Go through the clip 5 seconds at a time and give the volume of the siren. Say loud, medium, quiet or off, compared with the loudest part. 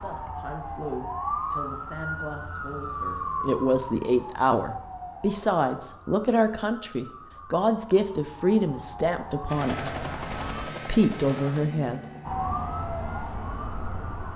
loud, medium, loud.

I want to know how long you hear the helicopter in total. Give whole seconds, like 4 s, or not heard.
5 s.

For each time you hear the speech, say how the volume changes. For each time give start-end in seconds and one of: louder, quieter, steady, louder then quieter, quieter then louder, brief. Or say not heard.
0.0-9.9 louder
10.8-12.0 brief.